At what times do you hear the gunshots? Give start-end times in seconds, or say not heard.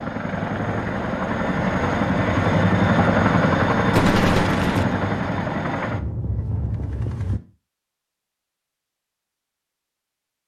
3.9-5.0.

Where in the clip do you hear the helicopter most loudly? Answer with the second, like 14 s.
3 s.